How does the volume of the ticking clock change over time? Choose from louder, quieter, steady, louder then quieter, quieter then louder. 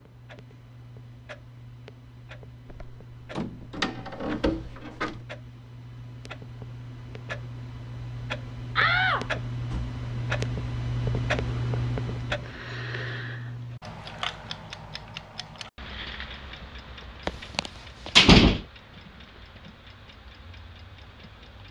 louder then quieter.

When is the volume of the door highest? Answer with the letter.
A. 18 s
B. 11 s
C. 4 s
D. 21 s
A.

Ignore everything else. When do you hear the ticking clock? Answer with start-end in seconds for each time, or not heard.
0.0-21.6.